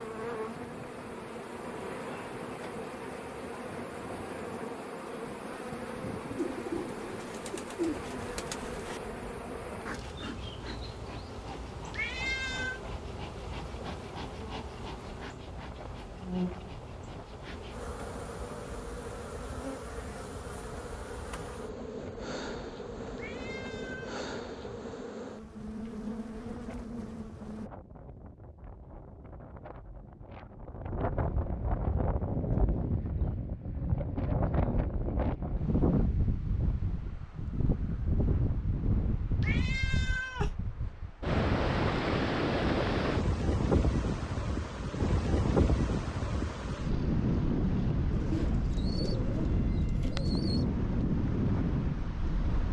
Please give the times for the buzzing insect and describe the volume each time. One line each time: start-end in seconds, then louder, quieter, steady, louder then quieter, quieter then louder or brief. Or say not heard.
0.0-27.7 steady.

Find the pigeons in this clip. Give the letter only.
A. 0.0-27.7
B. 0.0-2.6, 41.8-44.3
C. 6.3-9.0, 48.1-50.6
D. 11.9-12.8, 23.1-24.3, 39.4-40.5
C.